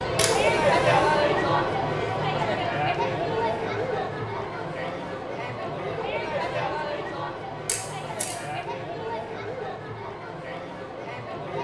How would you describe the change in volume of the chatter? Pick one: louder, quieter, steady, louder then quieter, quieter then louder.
quieter.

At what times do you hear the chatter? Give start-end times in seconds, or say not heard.
0.0-11.5.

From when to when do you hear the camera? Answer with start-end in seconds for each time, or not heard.
0.1-0.6, 7.7-8.3.